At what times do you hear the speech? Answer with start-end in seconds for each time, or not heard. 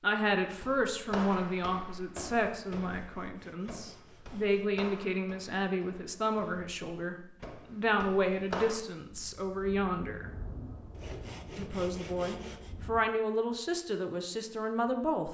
0.0-10.3, 11.6-15.2.